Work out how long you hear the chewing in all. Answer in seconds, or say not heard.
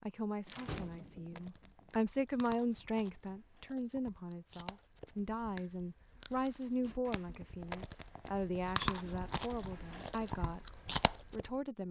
11 s.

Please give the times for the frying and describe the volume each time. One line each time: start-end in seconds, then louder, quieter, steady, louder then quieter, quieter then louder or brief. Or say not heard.
not heard.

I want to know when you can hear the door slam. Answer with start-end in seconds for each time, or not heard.
0.5-1.9.